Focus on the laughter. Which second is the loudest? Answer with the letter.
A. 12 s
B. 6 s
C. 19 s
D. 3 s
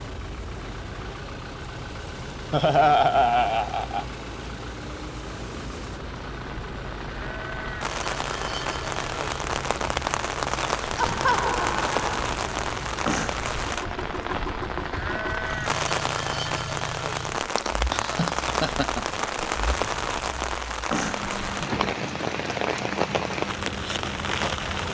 D.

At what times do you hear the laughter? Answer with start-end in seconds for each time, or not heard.
2.5-4.0, 10.9-12.1, 17.6-19.1.